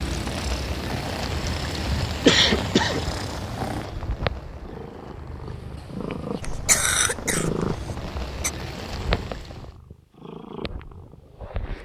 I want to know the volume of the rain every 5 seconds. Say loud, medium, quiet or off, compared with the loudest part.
loud, medium, off.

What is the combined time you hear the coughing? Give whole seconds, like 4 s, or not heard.
3 s.